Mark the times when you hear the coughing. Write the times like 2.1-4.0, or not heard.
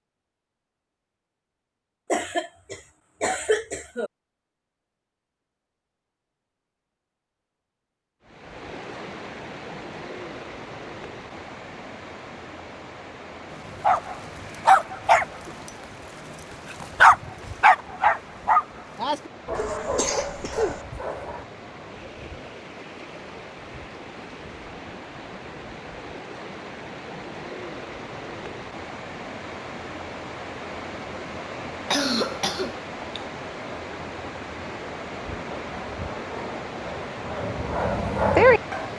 2.1-4.1, 19.6-20.8, 31.9-33.2.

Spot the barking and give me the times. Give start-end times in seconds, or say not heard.
13.8-21.4, 35.2-38.9.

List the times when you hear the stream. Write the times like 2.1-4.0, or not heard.
8.2-38.9.